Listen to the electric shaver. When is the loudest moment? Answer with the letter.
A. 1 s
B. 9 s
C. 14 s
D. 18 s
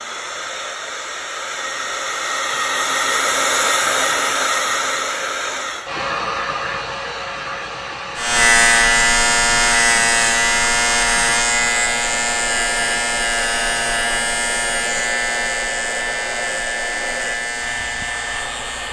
B.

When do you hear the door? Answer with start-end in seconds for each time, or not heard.
not heard.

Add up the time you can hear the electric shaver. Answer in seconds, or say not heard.
11 s.